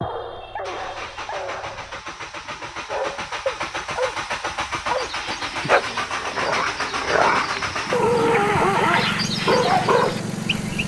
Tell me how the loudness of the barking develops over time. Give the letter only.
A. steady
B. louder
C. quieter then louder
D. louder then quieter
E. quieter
B.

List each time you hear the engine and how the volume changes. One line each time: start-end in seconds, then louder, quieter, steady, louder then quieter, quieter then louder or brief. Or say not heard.
0.0-10.8 louder.